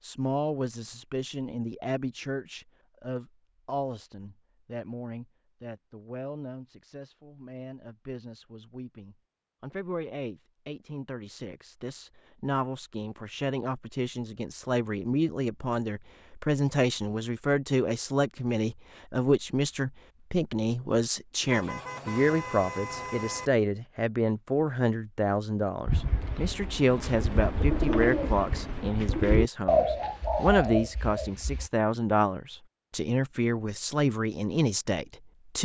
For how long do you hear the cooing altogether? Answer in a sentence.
You can hear the cooing for 6 seconds altogether.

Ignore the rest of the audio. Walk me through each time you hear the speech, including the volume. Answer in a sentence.
The speech can be heard from 0.0 to 35.6 s, getting louder.